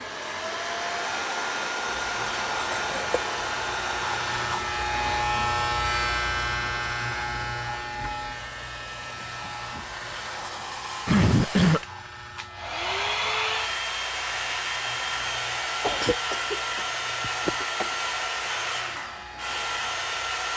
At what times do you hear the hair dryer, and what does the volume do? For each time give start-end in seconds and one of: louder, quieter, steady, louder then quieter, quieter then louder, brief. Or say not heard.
0.0-20.5 quieter then louder.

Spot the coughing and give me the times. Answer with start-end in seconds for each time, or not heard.
2.7-3.2, 11.1-11.8, 15.8-17.9.